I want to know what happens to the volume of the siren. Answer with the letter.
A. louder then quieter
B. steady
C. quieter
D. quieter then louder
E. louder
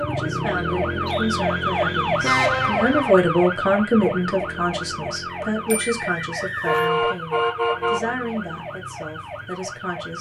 C.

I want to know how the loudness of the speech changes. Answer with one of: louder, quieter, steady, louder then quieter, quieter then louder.
louder then quieter.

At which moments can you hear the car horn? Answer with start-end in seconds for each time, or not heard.
2.2-3.1, 5.7-8.2.